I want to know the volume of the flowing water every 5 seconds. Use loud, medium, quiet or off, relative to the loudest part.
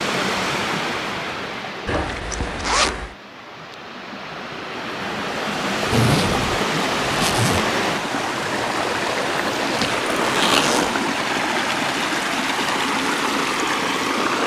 medium, loud, loud.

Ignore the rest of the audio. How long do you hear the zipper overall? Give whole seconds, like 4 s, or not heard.
4 s.